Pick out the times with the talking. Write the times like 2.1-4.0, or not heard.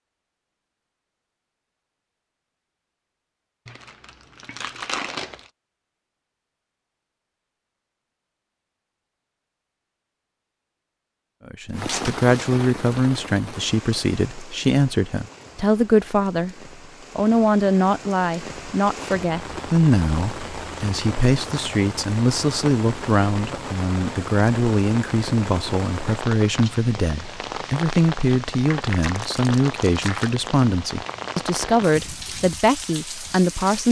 11.4-16.6, 17.1-33.8.